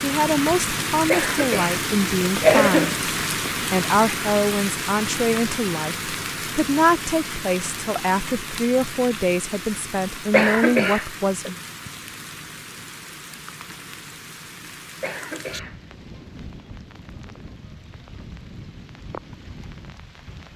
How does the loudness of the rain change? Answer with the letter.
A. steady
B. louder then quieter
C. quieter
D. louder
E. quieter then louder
C.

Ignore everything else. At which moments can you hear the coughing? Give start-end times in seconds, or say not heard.
1.1-3.0, 10.3-11.5, 15.0-15.8.